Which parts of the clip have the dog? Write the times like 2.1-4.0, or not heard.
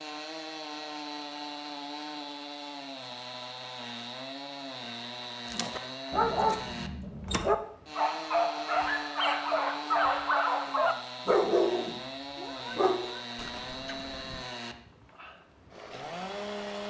5.5-14.4.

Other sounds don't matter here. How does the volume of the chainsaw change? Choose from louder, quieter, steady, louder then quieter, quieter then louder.
steady.